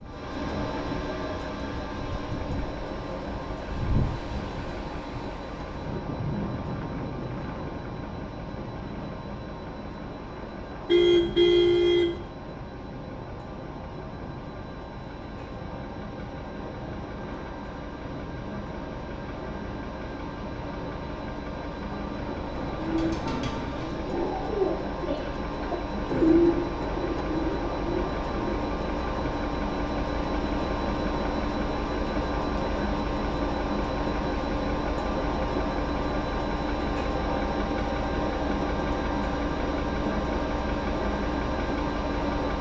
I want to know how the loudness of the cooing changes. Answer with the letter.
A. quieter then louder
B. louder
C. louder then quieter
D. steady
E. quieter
C.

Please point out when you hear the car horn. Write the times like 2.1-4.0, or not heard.
10.8-12.2, 22.4-23.6.